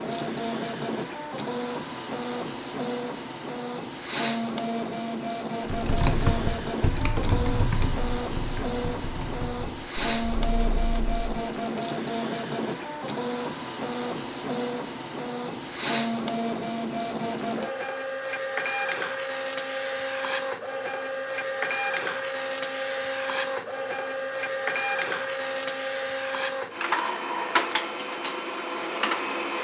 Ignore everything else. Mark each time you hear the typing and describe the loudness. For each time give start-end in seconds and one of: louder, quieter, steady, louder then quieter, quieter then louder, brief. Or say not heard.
5.7-11.3 quieter.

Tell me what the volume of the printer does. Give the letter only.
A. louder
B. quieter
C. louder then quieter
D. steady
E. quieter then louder
D.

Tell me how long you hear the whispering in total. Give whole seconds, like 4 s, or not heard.
not heard.